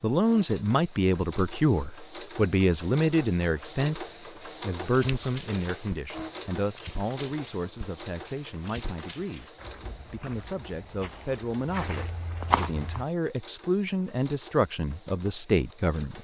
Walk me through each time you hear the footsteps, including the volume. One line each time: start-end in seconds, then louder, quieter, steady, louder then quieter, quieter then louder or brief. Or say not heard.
4.8-13.1 louder.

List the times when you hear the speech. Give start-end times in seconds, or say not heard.
0.0-16.1.